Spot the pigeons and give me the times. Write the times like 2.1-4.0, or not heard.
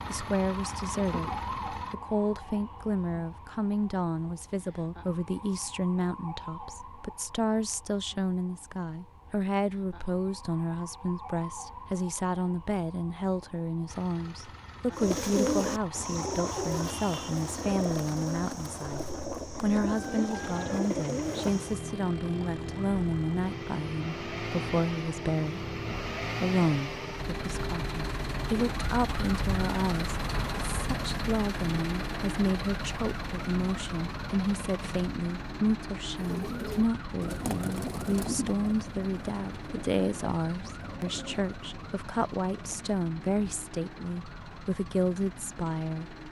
14.9-21.8, 36.2-42.9.